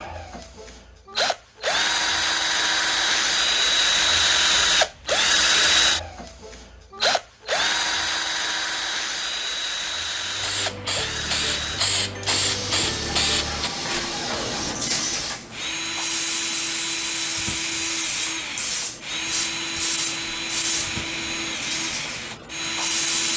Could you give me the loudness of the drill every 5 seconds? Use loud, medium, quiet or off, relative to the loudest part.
loud, loud, medium, medium, medium.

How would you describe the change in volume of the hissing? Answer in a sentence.
The loudness of the hissing goes down.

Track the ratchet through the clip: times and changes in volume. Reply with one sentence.
The ratchet can't be heard in this clip.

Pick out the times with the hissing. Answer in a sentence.
You can hear the hissing from 10.2 to 23.3 s.